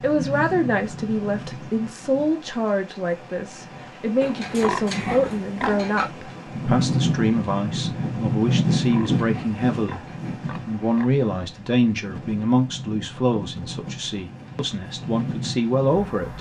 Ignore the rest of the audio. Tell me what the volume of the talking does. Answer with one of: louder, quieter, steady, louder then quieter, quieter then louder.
steady.